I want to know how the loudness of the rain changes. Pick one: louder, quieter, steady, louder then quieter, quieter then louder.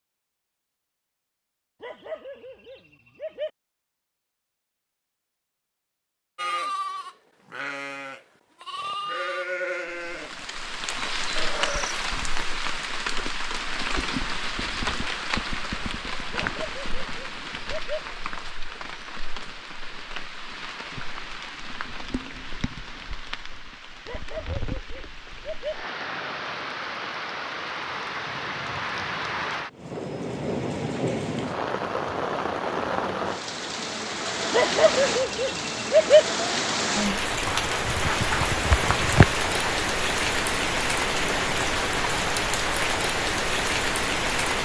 quieter then louder.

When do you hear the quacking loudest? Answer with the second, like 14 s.
39 s.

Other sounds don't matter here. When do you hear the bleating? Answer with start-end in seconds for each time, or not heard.
6.3-12.6.